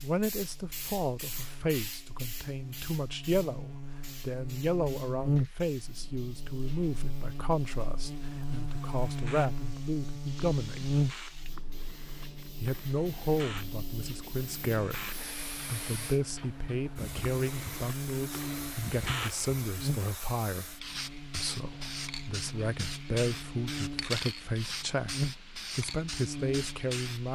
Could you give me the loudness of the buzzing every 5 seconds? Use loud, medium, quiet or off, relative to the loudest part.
medium, loud, loud, medium, medium, loud.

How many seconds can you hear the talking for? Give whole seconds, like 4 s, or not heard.
25 s.